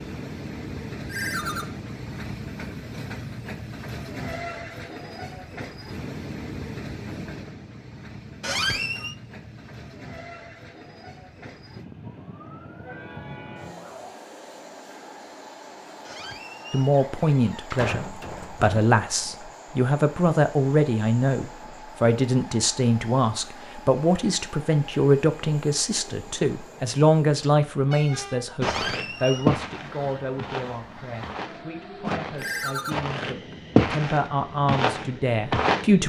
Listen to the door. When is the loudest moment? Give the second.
9 s.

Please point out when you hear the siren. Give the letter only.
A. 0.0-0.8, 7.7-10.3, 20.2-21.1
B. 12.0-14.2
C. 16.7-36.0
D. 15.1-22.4
B.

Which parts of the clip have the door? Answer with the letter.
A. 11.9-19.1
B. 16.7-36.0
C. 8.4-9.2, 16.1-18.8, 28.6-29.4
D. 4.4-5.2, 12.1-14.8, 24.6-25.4
C.